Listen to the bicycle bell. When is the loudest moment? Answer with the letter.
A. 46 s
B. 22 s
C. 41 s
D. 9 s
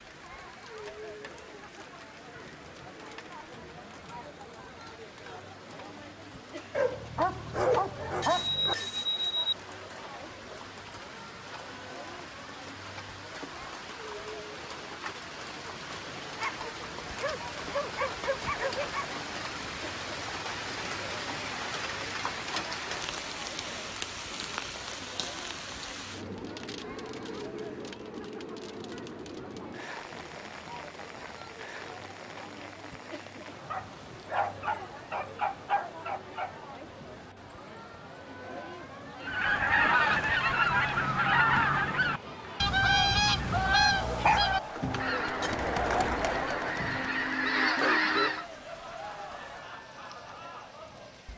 D.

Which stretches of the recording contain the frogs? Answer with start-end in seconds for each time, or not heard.
not heard.